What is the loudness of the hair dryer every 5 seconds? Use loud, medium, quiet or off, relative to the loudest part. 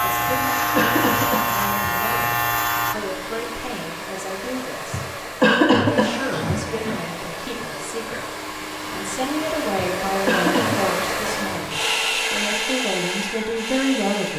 medium, medium, loud.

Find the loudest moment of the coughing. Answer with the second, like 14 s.
6 s.